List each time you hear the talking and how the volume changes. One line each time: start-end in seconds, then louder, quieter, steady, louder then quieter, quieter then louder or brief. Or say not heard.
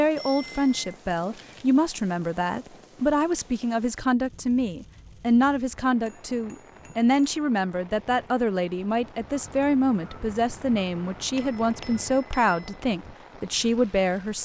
0.0-14.4 steady.